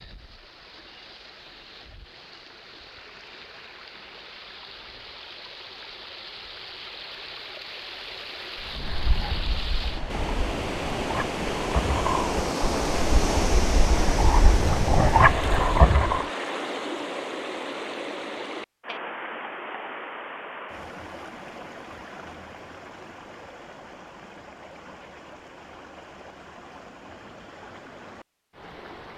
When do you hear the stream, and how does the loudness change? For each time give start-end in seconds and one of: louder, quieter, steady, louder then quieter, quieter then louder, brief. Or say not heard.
0.0-29.1 louder then quieter.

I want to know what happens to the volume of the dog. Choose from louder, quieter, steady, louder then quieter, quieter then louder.
louder.